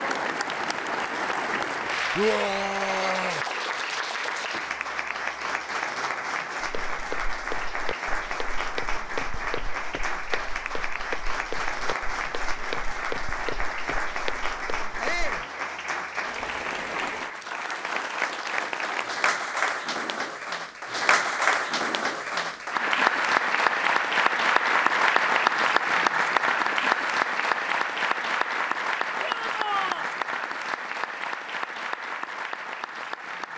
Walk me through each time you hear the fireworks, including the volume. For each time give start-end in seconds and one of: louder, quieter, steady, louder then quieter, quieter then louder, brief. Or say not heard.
not heard.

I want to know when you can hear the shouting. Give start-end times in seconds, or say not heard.
2.1-3.5, 15.0-15.4, 29.2-30.1.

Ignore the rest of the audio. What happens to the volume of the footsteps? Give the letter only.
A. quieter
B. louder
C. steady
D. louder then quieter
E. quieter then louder
C.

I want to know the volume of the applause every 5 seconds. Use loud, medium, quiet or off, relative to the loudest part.
medium, medium, medium, medium, loud, loud, medium.